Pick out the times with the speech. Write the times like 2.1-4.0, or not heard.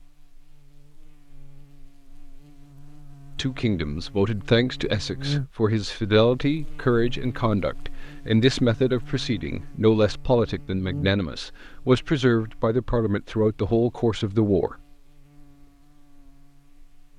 3.4-14.8.